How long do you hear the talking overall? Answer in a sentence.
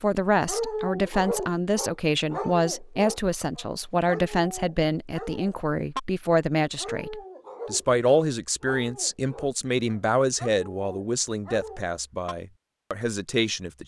The talking can be heard for 14 seconds in total.